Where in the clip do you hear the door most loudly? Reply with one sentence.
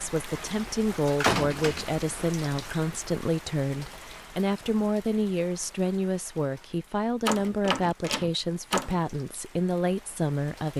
The volume of the door peaks at 1 second.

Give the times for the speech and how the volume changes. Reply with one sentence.
You can hear the speech from 0.0 to 10.7 s, at a steady volume.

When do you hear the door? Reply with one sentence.
You can hear the door from 1.0 to 2.6 s and from 7.2 to 9.0 s.